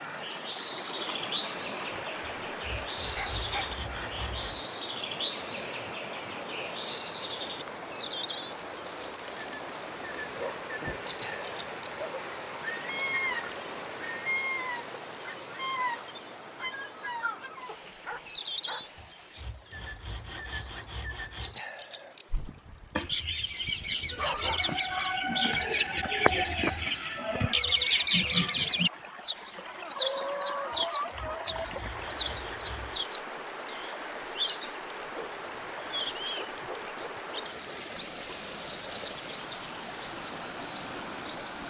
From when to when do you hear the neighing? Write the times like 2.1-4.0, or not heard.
not heard.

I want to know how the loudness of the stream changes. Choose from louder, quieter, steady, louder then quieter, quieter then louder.
quieter then louder.